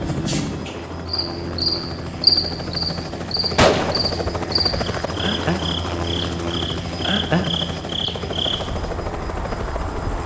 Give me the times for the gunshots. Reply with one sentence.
The gunshots can be heard from 3.5 to 4.2 s and from 4.9 to 5.5 s.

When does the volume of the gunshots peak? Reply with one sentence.
The loudest moment of the gunshots is at 4 seconds.